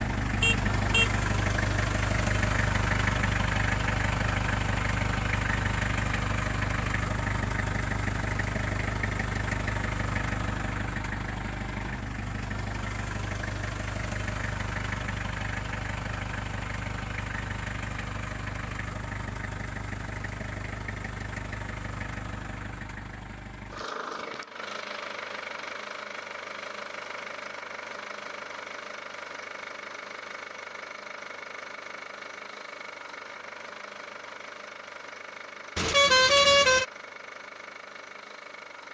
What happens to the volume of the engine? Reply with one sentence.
The loudness of the engine goes down.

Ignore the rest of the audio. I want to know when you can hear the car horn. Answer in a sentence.
The car horn can be heard from 0.4 to 1.1 s and from 35.8 to 36.9 s.